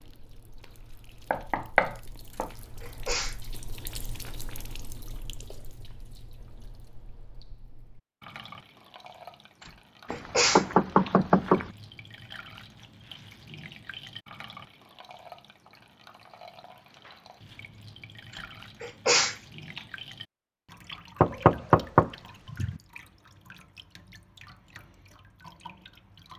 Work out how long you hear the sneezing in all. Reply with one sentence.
The sneezing can be heard for 4 seconds in total.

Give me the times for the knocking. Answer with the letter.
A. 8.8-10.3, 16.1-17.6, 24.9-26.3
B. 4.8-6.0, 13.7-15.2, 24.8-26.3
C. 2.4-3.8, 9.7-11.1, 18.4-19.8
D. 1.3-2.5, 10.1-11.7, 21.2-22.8
D.